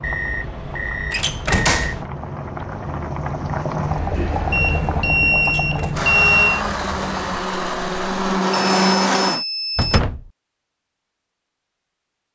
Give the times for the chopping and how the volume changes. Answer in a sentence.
The chopping can't be heard in this clip.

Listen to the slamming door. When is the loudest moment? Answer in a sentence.
The loudest moment of the slamming door is at 2 seconds.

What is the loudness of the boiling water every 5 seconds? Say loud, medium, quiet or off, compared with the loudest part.
loud, loud, off.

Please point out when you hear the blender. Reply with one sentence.
You can hear the blender from 5.9 to 9.4 s.